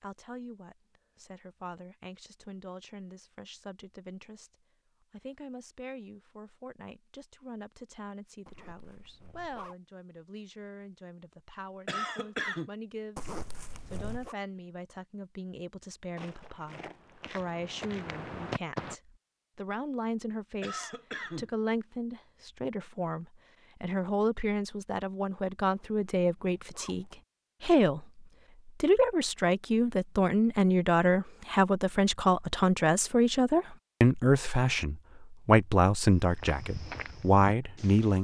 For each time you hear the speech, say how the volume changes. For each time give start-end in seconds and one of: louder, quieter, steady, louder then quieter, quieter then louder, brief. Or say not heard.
0.0-38.1 louder.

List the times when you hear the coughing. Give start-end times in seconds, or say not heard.
11.8-12.7, 20.6-21.5.